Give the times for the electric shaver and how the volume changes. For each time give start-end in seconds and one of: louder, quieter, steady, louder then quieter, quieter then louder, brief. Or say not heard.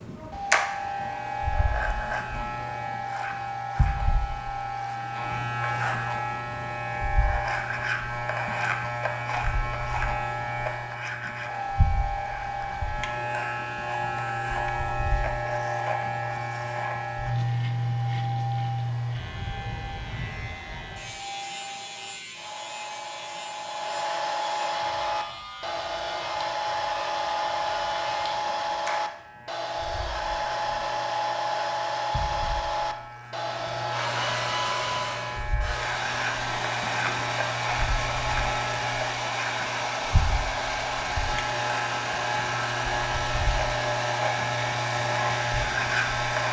0.0-46.4 quieter then louder.